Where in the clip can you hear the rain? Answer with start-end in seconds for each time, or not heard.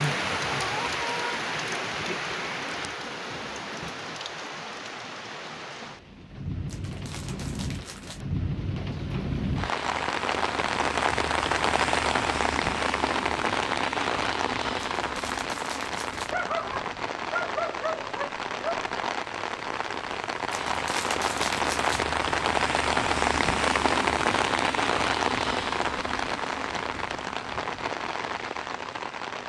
0.0-29.4.